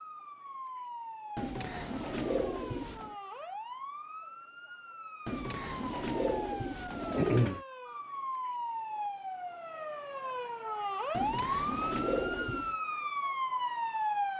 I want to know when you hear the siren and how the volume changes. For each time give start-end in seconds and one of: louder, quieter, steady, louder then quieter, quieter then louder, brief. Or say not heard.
0.0-14.3 louder.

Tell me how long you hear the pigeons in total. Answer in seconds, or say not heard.
6 s.